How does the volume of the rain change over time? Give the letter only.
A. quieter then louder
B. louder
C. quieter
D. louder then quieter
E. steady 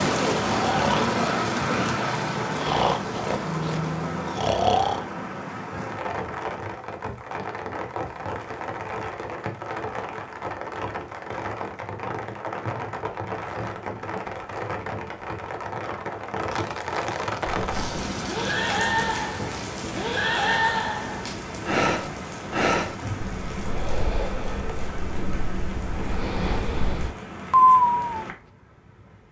C.